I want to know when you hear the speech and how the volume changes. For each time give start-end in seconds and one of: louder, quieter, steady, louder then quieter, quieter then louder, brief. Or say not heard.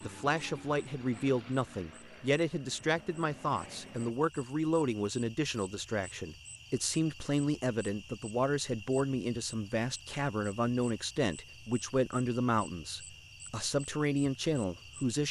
0.0-15.2 steady.